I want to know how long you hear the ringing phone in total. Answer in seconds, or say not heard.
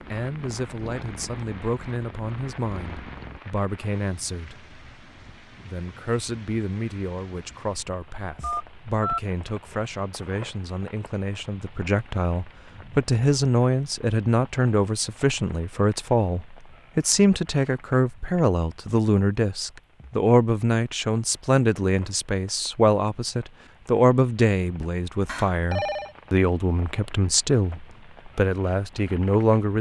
2 s.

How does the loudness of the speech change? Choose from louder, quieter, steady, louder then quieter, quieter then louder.
louder.